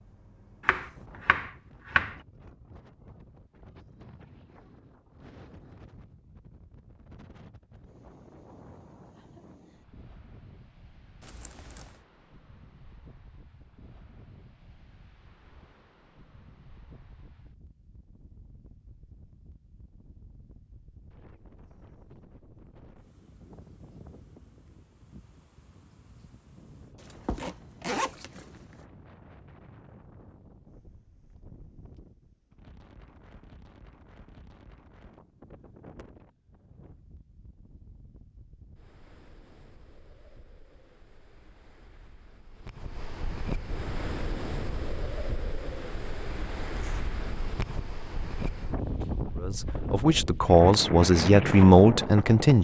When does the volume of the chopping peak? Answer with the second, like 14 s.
2 s.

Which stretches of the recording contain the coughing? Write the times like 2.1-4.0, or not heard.
not heard.